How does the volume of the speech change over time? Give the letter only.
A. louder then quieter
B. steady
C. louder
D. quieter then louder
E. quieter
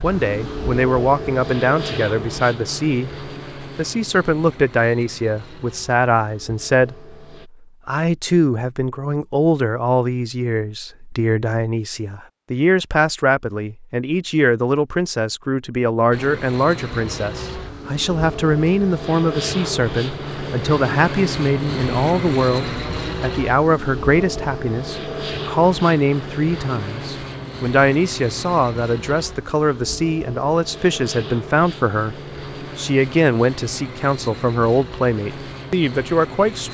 B.